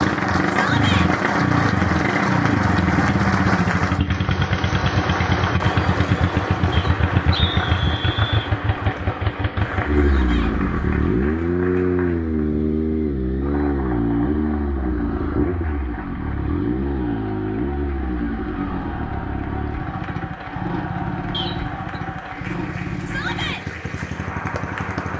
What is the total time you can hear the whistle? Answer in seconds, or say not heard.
2 s.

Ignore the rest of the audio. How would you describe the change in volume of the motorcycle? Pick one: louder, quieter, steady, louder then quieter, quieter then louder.
quieter.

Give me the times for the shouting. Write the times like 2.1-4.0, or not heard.
0.5-1.1, 9.9-10.6, 23.1-23.6.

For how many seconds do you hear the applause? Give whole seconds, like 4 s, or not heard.
25 s.